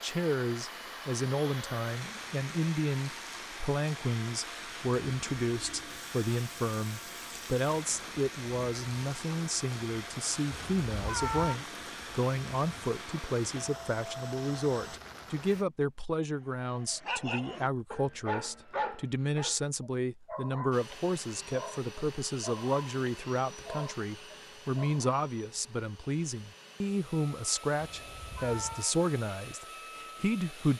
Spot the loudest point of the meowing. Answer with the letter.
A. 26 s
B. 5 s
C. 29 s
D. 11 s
D.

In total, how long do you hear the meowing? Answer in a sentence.
The meowing can be heard for 2 seconds in total.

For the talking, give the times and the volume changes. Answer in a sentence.
You can hear the talking from 0.0 to 30.7 s, at a steady volume.